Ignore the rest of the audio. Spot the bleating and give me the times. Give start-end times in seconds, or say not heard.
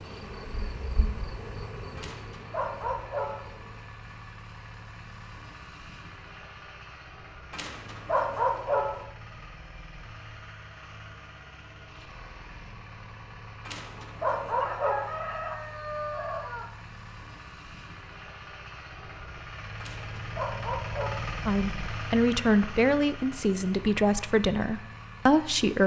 not heard.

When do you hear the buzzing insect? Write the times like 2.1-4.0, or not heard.
0.0-3.8.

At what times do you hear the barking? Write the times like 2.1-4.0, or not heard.
1.9-3.5, 7.5-9.1, 13.7-15.2, 19.8-21.3.